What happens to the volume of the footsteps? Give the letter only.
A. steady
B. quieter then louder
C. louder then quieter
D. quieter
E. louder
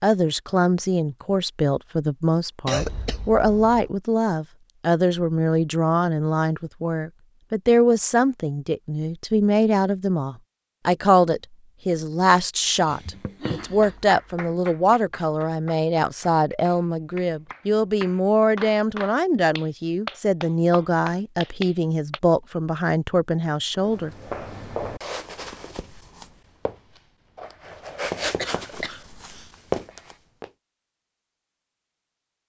B.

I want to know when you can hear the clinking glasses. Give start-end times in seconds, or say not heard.
not heard.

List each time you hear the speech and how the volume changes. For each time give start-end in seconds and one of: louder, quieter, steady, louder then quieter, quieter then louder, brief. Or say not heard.
0.0-24.1 steady.